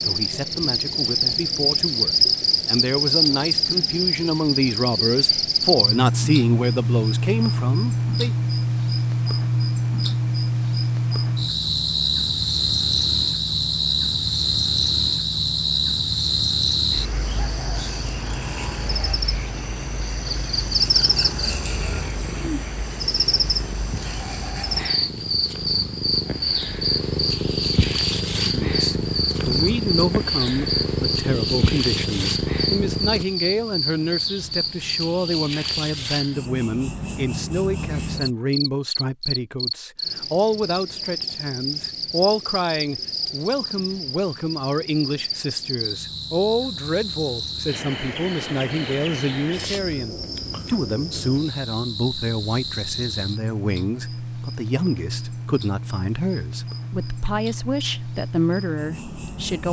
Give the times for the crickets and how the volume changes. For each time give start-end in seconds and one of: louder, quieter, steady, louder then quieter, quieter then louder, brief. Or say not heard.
0.0-59.6 quieter.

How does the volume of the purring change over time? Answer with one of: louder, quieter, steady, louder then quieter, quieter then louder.
louder.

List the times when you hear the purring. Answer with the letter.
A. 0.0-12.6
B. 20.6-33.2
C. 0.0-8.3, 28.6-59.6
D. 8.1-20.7
B.